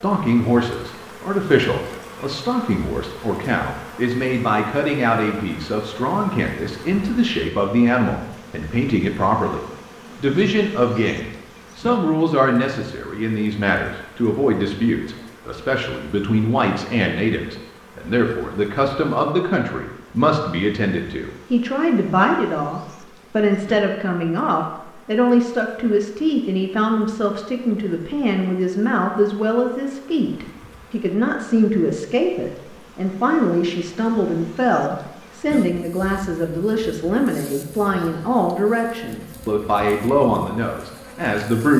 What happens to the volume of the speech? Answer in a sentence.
The loudness of the speech stays about the same.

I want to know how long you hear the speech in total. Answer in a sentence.
The speech can be heard for 41 seconds in total.